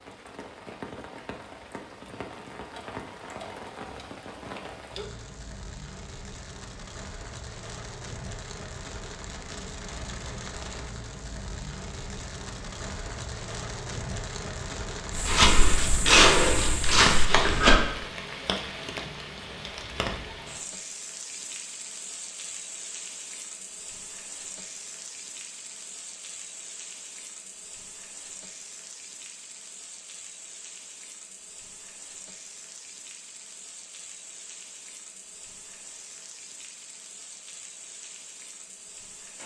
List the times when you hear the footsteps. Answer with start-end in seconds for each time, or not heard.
15.1-17.8.